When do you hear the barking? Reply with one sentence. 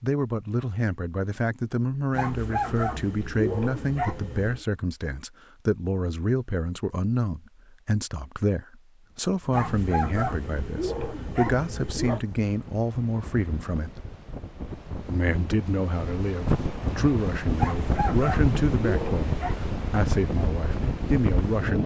The barking can be heard from 2.1 to 4.7 s, from 9.5 to 12.2 s and from 17.6 to 19.6 s.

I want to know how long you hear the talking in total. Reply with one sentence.
The talking can be heard for 21 seconds in total.